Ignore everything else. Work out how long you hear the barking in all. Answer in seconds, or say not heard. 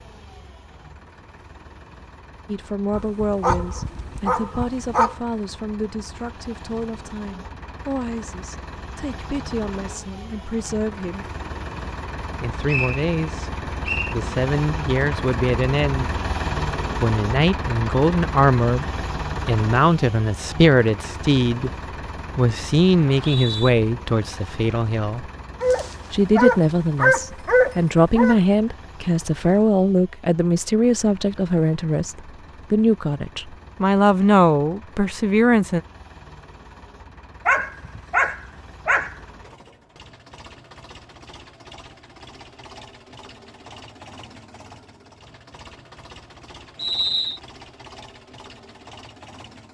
7 s.